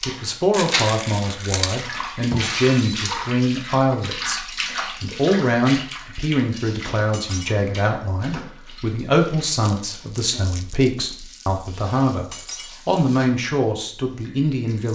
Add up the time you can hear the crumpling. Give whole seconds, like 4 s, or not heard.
3 s.